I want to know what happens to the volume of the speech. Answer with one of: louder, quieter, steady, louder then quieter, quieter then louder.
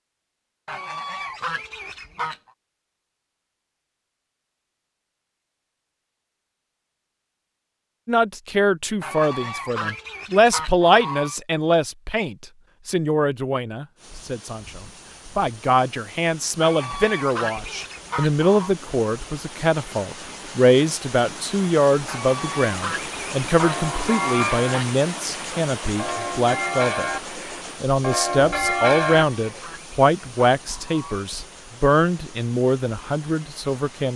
steady.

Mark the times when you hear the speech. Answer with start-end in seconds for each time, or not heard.
8.1-27.1, 27.8-34.1.